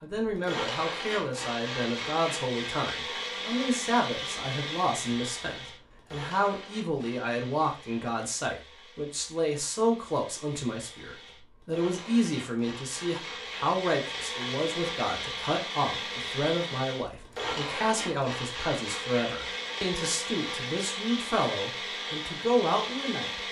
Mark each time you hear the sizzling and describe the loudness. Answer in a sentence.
The sizzling can't be heard in this clip.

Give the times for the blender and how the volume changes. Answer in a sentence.
You can hear the blender from 0.0 to 23.4 s, getting quieter then louder.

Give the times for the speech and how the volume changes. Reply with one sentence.
The speech can be heard from 0.0 to 23.4 s, at a steady volume.